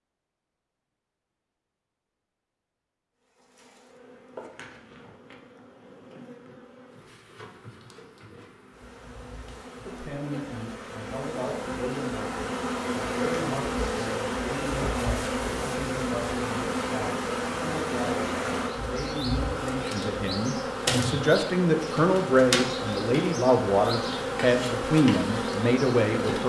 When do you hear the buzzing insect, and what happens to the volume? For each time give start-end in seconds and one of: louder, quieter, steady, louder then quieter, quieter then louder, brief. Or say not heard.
3.2-26.4 louder.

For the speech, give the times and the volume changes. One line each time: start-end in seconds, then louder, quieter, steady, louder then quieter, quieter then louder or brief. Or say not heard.
9.8-26.4 louder.